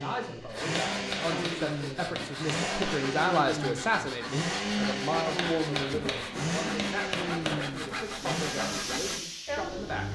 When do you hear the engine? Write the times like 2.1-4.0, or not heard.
0.0-10.0.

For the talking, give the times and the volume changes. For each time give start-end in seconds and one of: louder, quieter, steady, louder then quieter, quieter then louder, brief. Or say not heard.
0.0-10.0 louder then quieter.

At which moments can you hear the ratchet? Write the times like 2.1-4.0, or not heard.
not heard.